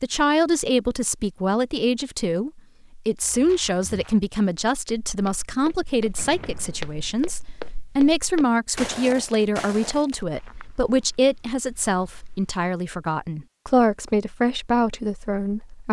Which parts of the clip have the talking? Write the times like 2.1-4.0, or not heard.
0.0-15.8.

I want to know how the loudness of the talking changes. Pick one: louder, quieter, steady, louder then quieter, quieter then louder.
steady.